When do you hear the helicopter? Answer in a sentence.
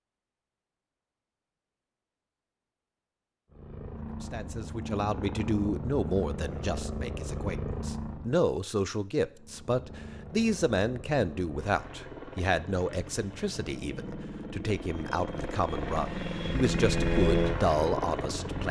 The helicopter can be heard from 3.5 to 8.4 s and from 9.3 to 18.6 s.